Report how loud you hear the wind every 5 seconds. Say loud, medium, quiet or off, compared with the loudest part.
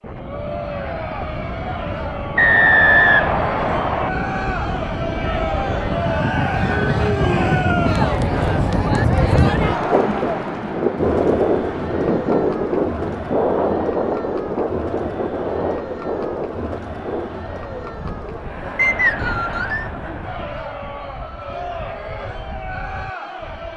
medium, loud, loud, medium, quiet.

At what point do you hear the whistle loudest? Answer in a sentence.
The loudest moment of the whistle is at 3 seconds.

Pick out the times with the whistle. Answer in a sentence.
You can hear the whistle from 2.4 to 4.1 s and from 18.8 to 19.9 s.